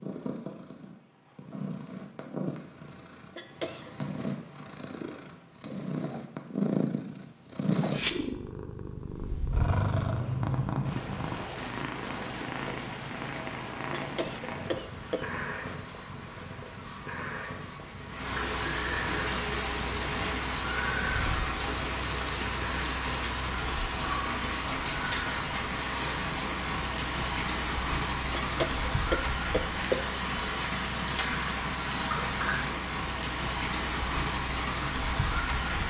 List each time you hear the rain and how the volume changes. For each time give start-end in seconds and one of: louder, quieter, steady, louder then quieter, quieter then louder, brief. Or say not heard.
10.8-35.8 louder.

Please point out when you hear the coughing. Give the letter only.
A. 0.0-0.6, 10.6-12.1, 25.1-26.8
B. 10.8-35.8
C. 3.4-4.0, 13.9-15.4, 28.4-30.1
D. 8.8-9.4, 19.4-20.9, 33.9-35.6
C.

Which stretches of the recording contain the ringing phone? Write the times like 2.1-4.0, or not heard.
not heard.